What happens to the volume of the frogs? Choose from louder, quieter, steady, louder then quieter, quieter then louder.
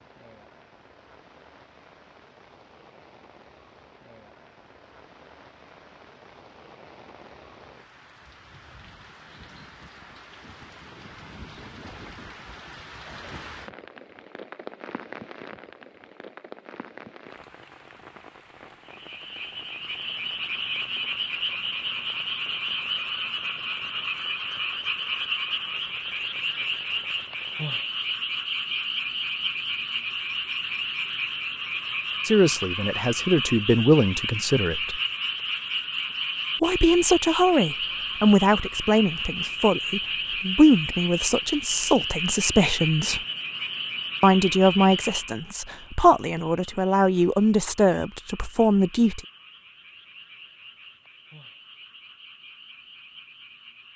quieter.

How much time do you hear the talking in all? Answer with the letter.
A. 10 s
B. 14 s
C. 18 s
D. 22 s
B.